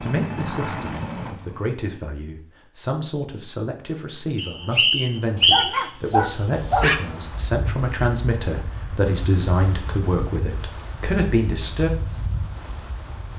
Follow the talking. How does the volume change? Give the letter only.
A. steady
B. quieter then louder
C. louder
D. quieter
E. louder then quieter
C.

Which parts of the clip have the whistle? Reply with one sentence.
You can hear the whistle from 4.3 to 5.8 s.